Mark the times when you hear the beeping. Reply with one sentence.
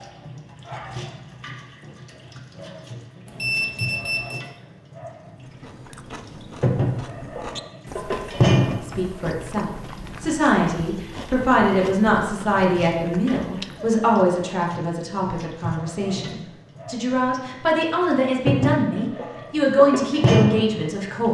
You can hear the beeping from 3.2 to 4.4 s.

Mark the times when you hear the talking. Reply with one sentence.
The talking can be heard from 8.8 to 21.2 s.